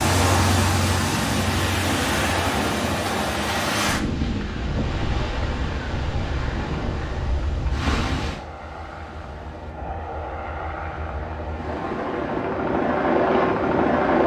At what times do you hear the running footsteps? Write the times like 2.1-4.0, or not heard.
not heard.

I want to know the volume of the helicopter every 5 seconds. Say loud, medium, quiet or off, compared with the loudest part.
medium, quiet, loud.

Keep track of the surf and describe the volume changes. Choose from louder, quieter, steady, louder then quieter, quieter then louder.
quieter.